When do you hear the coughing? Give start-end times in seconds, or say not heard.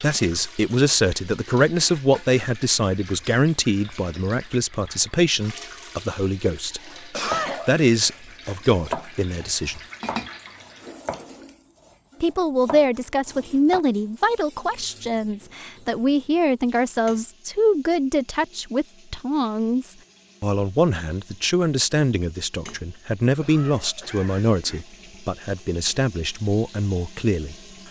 7.1-7.8, 23.4-24.9.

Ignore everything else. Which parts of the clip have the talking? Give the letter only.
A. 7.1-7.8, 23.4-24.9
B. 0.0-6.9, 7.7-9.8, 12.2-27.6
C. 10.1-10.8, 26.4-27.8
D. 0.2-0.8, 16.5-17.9
B.